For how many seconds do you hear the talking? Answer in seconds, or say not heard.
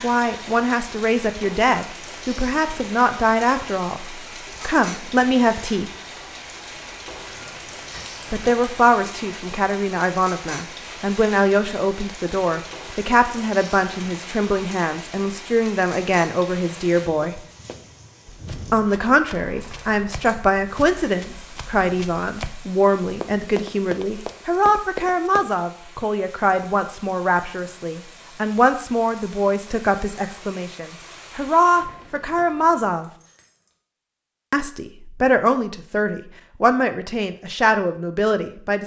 34 s.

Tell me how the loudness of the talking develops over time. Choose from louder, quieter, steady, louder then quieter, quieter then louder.
steady.